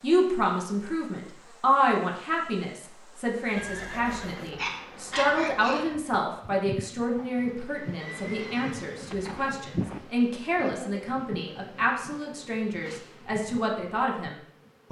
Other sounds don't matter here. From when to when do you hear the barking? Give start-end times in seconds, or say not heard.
4.5-5.9.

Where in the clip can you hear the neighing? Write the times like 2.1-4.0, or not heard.
3.5-4.8, 8.0-10.0.